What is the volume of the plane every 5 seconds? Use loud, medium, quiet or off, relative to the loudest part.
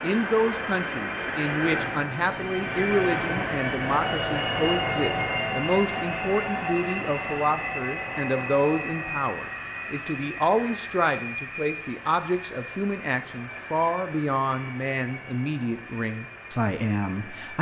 loud, loud, medium, quiet.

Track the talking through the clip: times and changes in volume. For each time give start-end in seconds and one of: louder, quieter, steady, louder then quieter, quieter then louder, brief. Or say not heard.
0.0-17.5 steady.